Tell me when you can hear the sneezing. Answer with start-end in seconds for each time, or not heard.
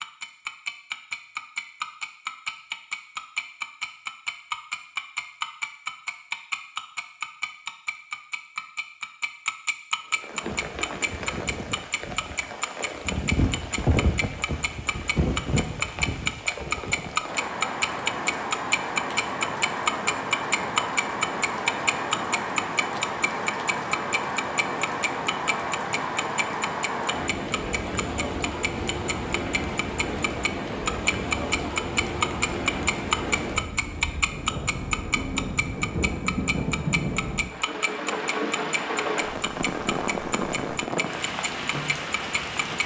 not heard.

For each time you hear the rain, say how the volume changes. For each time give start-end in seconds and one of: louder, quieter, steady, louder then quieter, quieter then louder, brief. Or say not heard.
10.2-42.8 steady.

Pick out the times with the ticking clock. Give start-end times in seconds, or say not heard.
0.0-42.8.